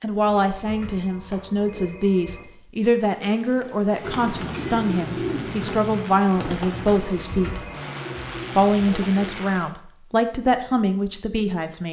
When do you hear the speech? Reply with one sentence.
You can hear the speech from 0.0 to 7.7 s and from 8.6 to 11.8 s.